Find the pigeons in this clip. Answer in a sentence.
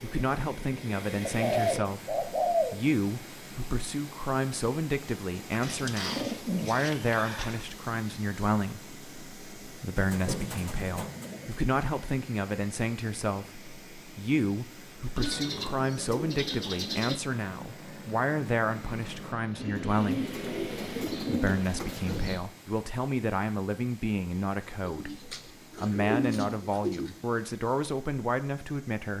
The pigeons can be heard from 1.2 to 2.8 s, from 5.5 to 7.7 s, from 9.9 to 11.6 s, from 15.2 to 17.2 s, from 19.6 to 22.4 s and from 24.9 to 27.1 s.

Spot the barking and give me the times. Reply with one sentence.
The barking can't be heard in this clip.